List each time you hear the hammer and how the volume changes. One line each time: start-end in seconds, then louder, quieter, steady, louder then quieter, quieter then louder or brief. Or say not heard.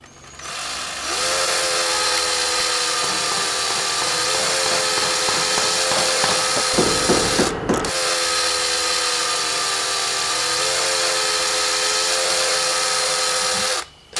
1.8-8.0 louder.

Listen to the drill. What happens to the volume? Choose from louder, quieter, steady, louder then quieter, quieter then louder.
steady.